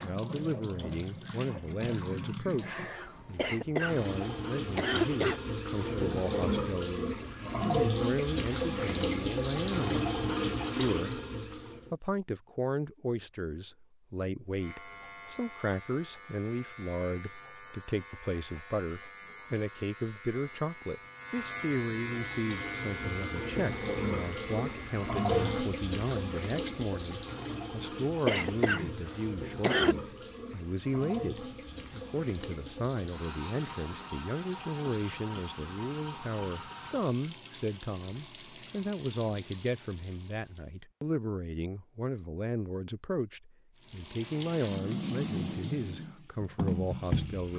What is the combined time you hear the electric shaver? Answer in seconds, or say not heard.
11 s.